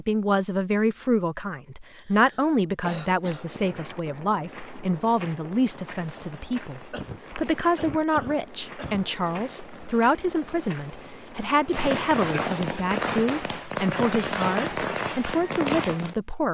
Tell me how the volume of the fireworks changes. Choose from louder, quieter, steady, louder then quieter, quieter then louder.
louder.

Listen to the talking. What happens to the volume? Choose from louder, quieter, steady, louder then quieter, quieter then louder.
steady.